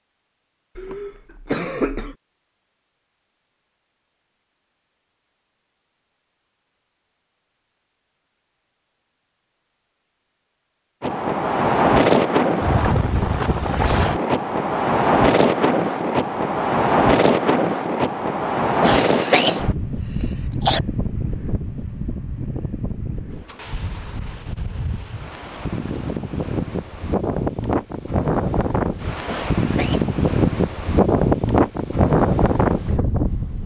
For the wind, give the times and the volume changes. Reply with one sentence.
You can hear the wind from 11.0 to 33.6 s, getting quieter then louder.